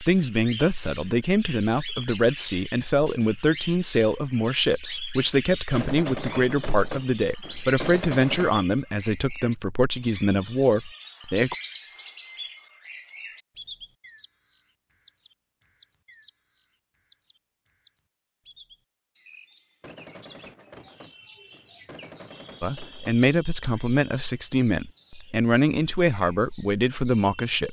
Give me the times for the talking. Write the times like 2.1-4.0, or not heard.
0.0-11.6, 22.6-27.6.